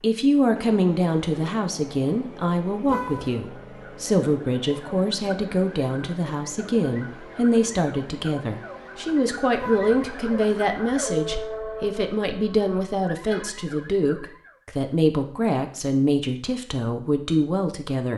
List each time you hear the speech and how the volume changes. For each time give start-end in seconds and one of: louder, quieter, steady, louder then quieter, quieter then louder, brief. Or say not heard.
0.0-18.1 steady.